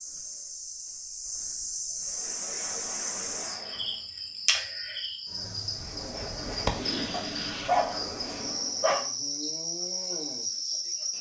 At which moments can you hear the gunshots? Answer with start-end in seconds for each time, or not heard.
5.8-7.7.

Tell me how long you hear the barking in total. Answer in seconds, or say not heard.
2 s.